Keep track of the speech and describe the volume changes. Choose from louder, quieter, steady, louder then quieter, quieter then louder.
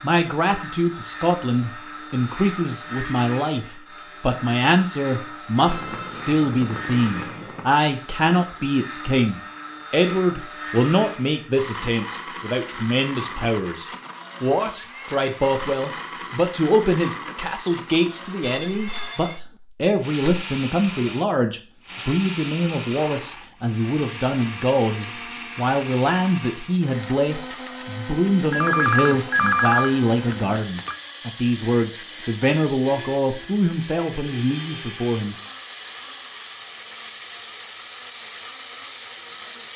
steady.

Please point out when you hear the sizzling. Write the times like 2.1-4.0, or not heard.
not heard.